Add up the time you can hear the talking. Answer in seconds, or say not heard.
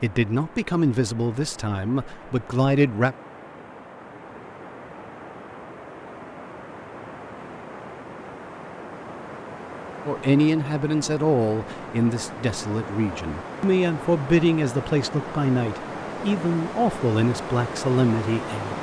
12 s.